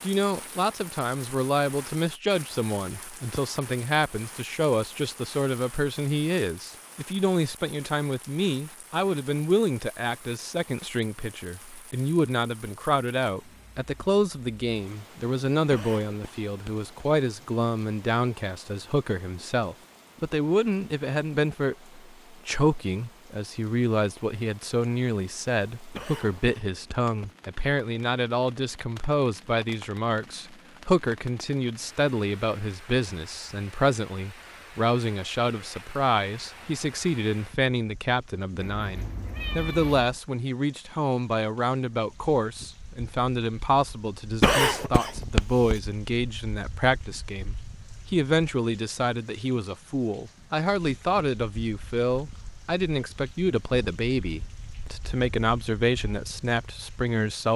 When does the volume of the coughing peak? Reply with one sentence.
The volume of the coughing peaks at 45 seconds.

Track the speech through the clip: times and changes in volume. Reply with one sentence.
The speech can be heard from 0.0 to 57.5 s, at a steady volume.